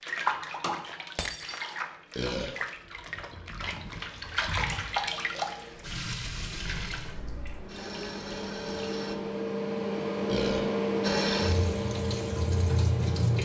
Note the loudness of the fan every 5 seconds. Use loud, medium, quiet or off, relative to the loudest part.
quiet, medium, loud.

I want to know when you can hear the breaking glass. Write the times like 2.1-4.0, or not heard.
1.1-1.8.